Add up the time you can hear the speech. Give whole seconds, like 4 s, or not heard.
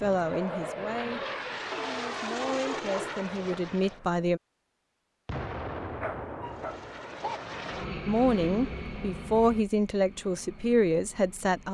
8 s.